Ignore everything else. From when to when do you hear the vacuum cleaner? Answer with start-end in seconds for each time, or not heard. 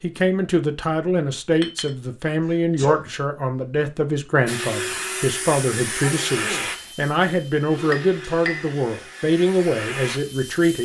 4.5-10.8.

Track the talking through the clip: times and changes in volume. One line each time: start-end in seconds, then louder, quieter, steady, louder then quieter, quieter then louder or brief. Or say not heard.
0.0-10.8 steady.